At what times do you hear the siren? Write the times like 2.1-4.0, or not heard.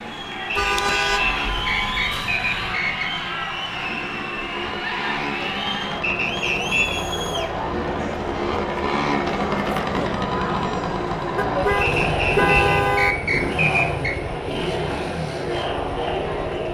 not heard.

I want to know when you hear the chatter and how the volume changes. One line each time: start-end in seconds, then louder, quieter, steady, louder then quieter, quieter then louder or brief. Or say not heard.
0.0-16.7 steady.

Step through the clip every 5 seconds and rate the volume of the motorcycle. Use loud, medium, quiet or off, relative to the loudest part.
medium, loud, loud, medium.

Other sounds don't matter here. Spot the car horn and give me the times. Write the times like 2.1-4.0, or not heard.
0.6-2.8, 11.3-13.2.